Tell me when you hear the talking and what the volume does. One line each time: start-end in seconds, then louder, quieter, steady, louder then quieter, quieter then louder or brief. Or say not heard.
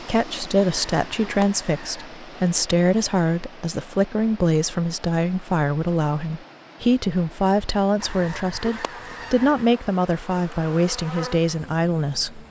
0.0-12.4 steady.